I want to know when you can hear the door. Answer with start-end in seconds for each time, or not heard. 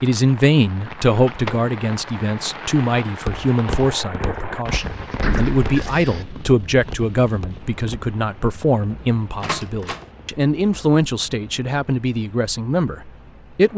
0.9-1.8, 4.8-6.2, 9.4-10.1.